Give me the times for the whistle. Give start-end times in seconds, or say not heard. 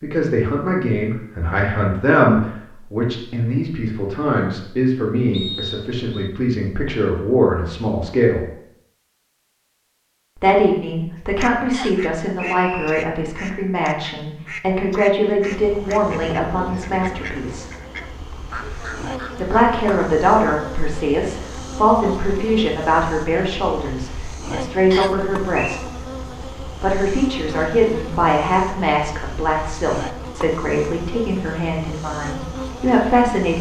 5.3-6.3, 11.7-12.9, 24.9-25.8.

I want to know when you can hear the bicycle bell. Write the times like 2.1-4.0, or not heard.
not heard.